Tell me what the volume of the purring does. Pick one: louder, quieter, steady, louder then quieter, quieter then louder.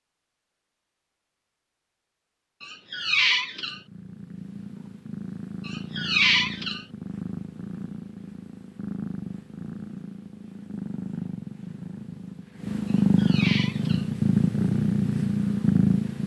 louder.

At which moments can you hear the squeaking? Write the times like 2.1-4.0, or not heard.
2.6-3.8, 5.7-6.8, 12.8-14.1.